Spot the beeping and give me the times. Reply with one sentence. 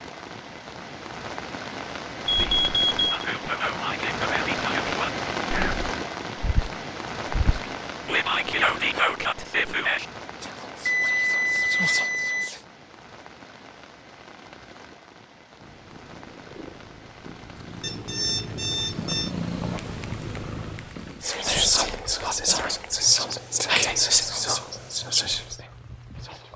The beeping can be heard from 2.2 to 3.0 s, from 10.8 to 12.5 s and from 17.8 to 19.3 s.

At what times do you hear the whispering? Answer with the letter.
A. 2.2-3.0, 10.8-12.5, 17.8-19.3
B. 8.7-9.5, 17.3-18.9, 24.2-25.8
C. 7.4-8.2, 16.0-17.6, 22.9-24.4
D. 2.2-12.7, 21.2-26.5
D.